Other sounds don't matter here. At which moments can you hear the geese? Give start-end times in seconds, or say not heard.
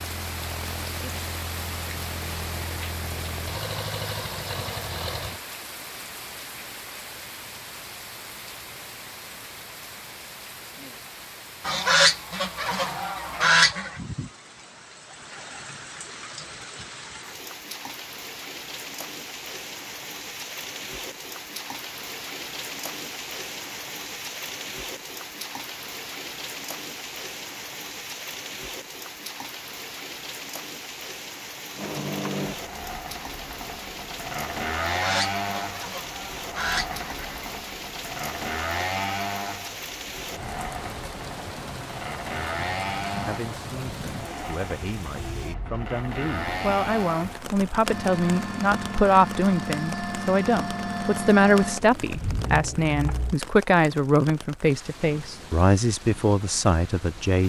11.7-14.0, 34.8-37.6.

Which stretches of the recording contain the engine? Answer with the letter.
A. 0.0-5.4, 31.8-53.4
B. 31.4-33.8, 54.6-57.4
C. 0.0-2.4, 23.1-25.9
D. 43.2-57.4
A.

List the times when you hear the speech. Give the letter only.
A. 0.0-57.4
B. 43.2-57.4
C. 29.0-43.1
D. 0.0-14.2
B.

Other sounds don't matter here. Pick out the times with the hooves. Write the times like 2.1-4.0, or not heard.
not heard.